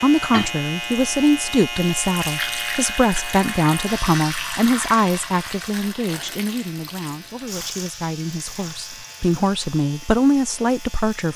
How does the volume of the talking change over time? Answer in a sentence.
The volume of the talking goes down, then up.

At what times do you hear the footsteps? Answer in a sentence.
The footsteps can't be heard in this clip.